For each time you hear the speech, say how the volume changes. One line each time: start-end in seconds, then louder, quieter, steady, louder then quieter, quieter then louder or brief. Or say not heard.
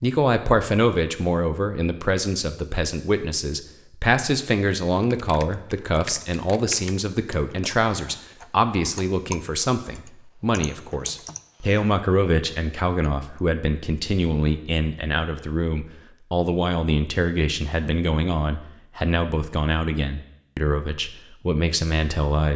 0.0-22.5 steady.